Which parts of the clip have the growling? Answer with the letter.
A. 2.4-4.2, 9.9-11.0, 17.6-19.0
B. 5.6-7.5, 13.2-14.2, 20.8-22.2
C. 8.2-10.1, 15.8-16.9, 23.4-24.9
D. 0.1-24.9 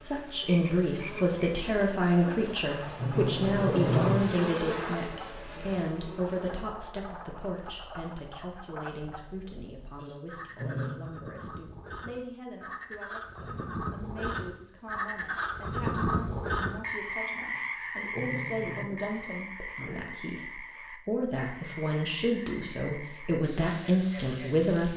A.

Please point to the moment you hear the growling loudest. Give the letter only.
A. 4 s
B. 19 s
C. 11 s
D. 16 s
A.